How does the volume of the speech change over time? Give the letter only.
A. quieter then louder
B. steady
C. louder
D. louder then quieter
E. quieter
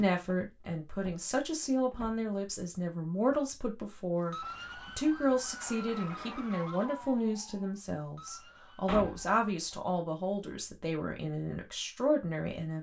B.